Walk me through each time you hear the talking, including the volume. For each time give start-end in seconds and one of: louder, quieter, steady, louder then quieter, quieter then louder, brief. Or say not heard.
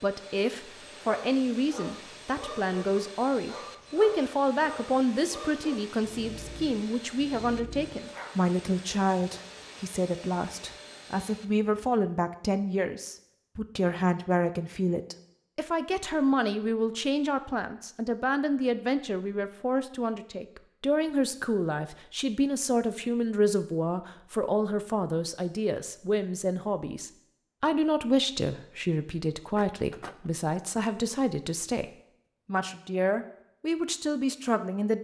0.0-34.9 steady.